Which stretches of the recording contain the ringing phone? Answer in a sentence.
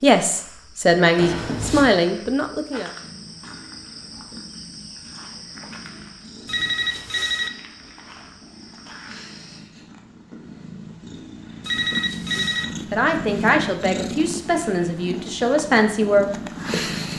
The ringing phone can be heard from 1.1 to 1.9 s, from 6.5 to 7.5 s and from 11.6 to 12.7 s.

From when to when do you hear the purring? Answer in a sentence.
The purring can be heard from 3.0 to 17.1 s.